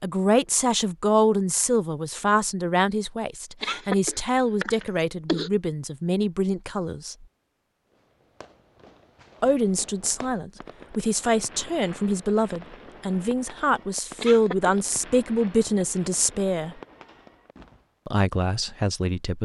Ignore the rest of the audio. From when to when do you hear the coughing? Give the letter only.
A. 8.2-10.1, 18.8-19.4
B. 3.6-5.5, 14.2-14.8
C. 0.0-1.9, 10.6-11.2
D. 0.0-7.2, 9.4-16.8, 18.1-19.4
B.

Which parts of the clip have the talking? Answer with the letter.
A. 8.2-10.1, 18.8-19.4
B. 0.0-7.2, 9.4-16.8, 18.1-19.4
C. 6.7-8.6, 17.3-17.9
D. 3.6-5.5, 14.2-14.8
B.